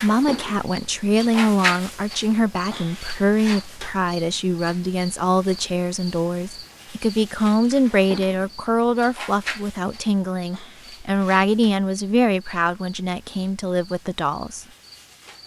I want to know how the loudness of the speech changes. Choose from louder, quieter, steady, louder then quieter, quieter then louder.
steady.